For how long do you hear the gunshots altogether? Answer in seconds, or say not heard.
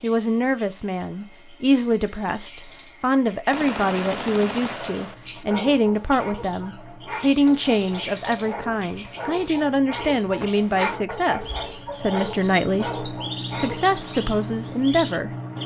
2 s.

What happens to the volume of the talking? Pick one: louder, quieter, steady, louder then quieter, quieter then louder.
steady.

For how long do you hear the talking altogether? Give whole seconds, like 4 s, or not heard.
15 s.